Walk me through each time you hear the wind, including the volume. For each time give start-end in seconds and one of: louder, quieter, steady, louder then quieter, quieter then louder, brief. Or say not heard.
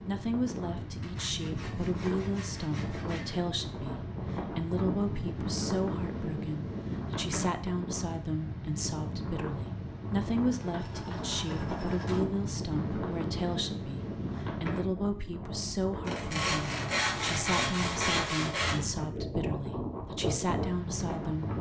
0.0-21.5 steady.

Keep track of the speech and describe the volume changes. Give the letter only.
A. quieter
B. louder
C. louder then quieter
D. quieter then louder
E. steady
E.